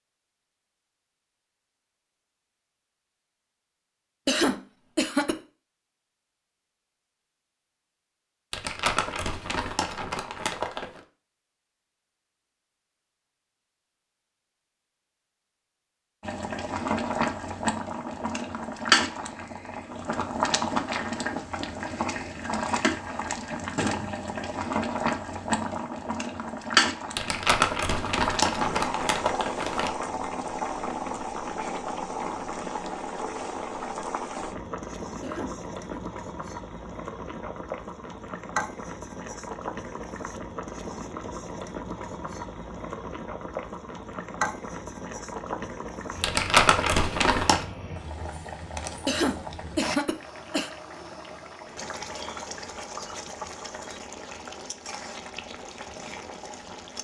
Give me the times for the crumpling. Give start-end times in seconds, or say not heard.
8.5-11.0, 27.1-29.9, 46.2-47.6.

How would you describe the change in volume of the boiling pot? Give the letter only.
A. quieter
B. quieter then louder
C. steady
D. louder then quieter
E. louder
A.